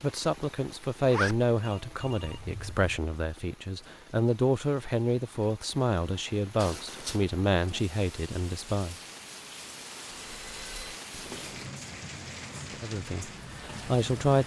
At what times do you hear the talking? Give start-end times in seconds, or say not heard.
0.0-8.9, 12.7-14.4.